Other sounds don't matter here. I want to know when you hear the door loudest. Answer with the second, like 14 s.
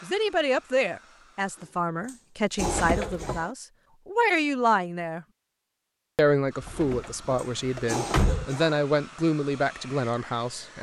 8 s.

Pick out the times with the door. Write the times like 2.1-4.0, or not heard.
2.5-3.4, 6.6-8.4.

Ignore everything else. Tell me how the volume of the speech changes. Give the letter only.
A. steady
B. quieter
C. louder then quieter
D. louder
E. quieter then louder
A.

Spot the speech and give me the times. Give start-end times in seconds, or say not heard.
0.0-5.2, 6.2-10.7.